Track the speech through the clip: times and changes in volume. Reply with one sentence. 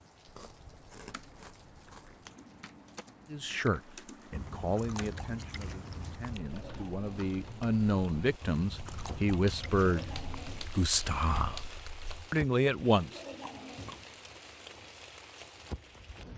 You can hear the speech from 3.3 to 11.7 s, getting quieter then louder; and briefly from 12.3 to 13.2 s.